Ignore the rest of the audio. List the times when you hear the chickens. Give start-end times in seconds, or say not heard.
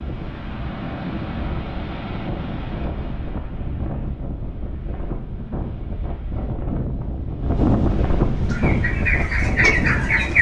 8.4-10.3.